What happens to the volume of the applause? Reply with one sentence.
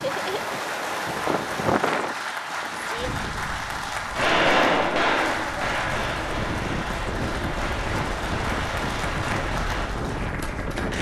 The loudness of the applause stays about the same.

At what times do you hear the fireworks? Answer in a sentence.
The fireworks can be heard from 4.1 to 9.9 s.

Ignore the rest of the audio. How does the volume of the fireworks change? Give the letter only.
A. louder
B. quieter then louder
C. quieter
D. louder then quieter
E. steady
C.